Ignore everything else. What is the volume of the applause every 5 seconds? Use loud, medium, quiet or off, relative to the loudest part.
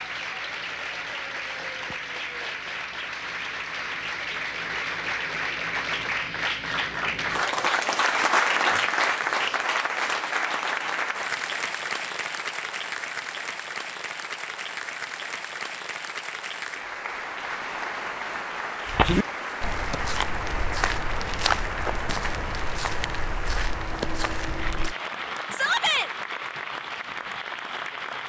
medium, loud, medium, medium, medium, medium.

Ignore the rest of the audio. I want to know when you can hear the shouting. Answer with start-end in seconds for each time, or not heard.
25.5-26.1.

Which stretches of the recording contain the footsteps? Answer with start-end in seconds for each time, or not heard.
18.9-24.9.